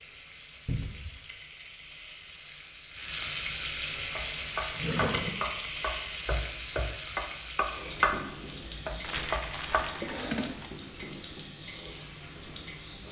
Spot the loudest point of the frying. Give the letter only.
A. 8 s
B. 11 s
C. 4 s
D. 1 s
C.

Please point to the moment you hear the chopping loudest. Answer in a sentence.
The loudest moment of the chopping is at 8 seconds.